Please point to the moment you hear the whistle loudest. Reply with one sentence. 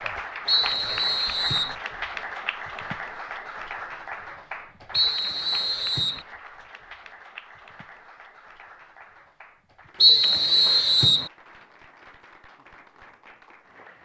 The loudest moment of the whistle is at 10 seconds.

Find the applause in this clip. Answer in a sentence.
The applause can be heard from 0.0 to 14.0 s.